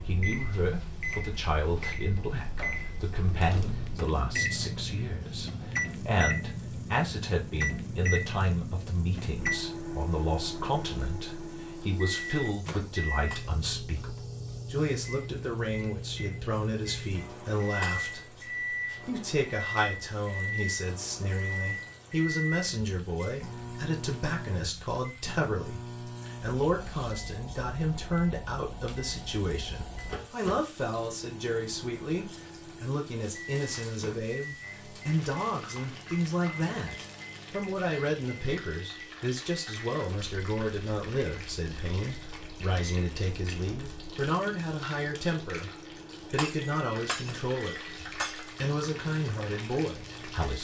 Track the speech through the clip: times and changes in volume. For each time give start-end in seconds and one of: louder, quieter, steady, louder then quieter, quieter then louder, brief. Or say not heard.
0.0-45.7 steady
46.3-50.5 steady.